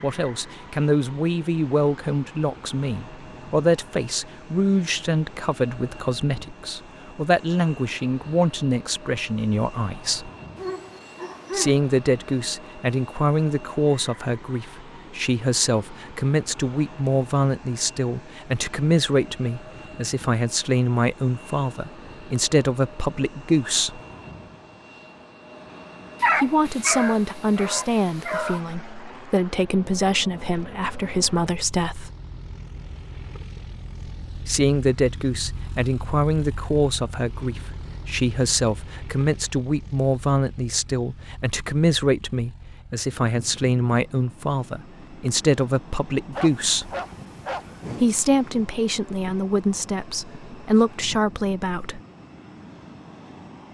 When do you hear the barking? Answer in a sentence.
You can hear the barking from 10.6 to 11.8 s, from 26.2 to 28.6 s and from 46.3 to 48.1 s.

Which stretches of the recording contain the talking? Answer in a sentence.
You can hear the talking from 0.0 to 10.3 s, from 11.5 to 24.0 s, from 26.4 to 32.1 s, from 34.5 to 46.9 s and from 48.0 to 52.0 s.